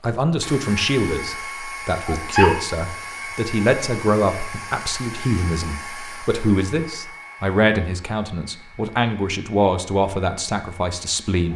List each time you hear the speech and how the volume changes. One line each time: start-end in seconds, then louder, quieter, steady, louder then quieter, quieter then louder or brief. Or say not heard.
0.0-11.5 steady.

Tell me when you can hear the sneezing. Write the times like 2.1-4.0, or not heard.
2.0-2.6.